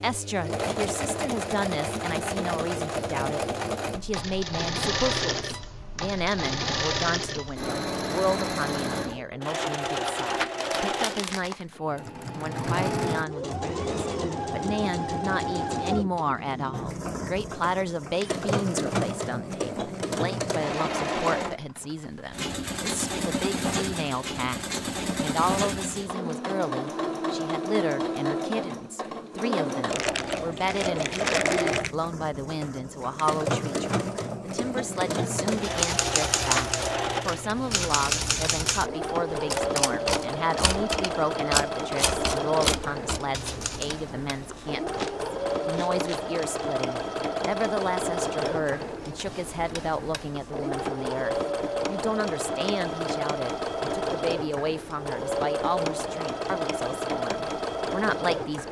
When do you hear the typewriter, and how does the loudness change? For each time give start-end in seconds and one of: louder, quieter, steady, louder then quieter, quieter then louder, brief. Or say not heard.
35.5-44.0 steady.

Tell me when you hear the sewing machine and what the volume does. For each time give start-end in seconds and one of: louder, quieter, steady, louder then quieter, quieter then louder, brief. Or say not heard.
0.0-58.6 steady.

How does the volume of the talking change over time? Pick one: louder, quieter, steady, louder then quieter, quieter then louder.
steady.